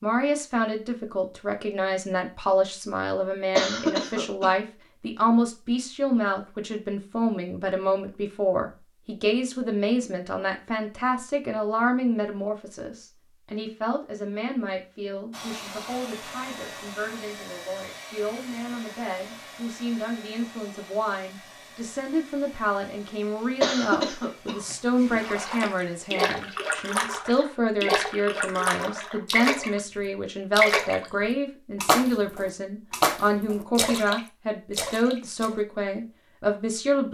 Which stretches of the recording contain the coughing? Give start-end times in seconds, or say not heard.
3.5-4.5, 23.6-25.4.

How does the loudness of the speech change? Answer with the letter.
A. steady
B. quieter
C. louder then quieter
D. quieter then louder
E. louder
D.